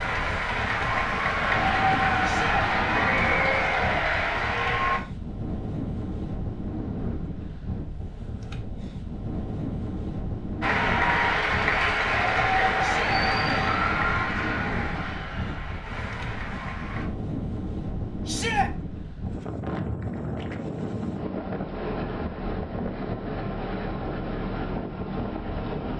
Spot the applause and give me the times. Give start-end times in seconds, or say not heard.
0.0-5.0, 10.6-17.1.